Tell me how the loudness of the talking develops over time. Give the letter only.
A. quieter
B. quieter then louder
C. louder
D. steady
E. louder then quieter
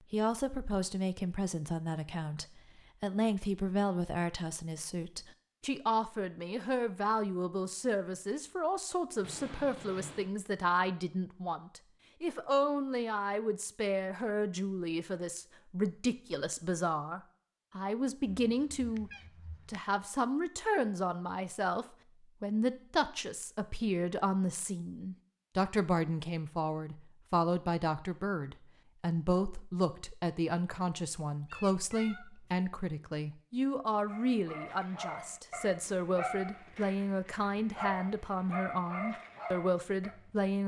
D.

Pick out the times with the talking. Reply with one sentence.
The talking can be heard from 0.1 to 40.6 s.